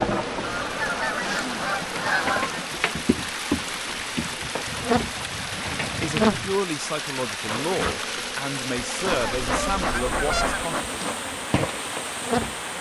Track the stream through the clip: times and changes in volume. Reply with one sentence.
You can hear the stream from 0.0 to 12.7 s, at a steady volume.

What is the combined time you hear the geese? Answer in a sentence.
The geese can be heard for 6 seconds in total.